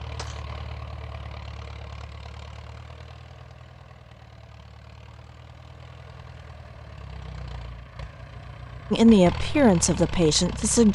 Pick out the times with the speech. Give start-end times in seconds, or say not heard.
8.9-10.9.